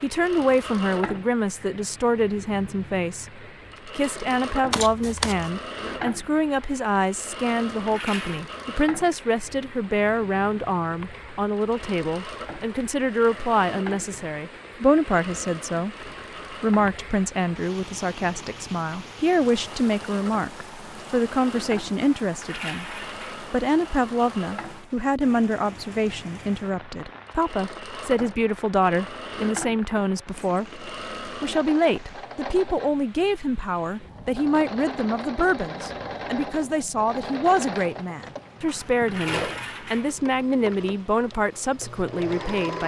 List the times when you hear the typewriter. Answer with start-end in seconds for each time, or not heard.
not heard.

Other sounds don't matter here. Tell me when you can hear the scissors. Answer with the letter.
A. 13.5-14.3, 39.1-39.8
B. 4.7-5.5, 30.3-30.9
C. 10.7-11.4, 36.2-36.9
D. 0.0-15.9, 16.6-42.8
B.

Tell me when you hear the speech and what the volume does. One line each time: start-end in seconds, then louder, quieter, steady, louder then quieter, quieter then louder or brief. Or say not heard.
0.0-15.9 steady
16.6-42.8 steady.